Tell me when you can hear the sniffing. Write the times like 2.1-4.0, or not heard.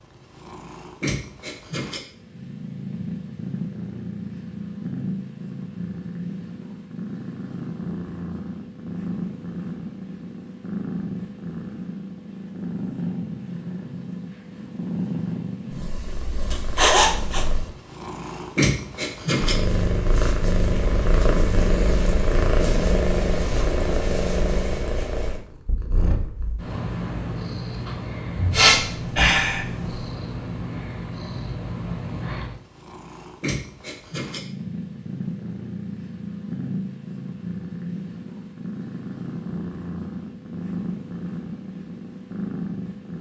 16.8-17.4, 28.5-29.6.